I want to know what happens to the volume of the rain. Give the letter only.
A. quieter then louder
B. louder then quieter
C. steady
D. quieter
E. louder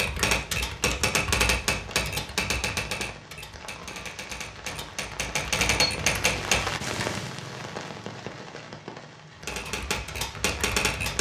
B.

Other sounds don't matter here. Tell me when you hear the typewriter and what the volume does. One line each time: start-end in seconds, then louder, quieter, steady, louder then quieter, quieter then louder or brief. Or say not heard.
0.0-7.0 quieter then louder
9.3-11.1 brief.